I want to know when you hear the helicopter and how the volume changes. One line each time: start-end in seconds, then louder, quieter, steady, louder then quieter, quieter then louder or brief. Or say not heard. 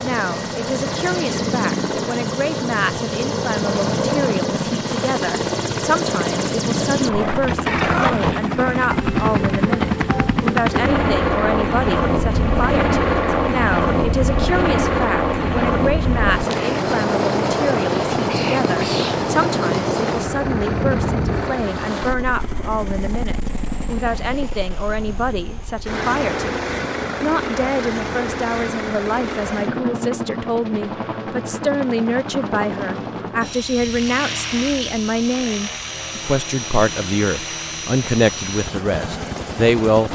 0.0-40.1 quieter.